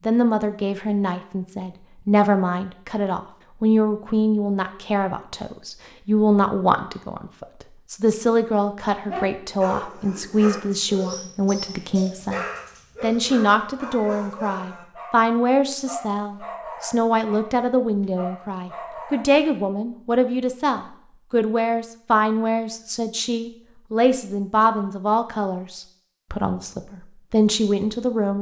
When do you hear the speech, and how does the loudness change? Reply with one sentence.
You can hear the speech from 0.1 to 28.3 s, at a steady volume.